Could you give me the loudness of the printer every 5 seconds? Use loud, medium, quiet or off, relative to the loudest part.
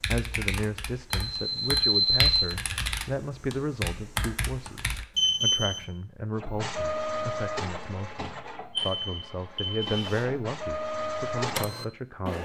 off, loud, loud.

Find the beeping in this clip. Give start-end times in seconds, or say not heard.
1.1-2.5, 5.2-5.8, 8.8-10.2.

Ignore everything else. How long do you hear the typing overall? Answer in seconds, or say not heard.
5 s.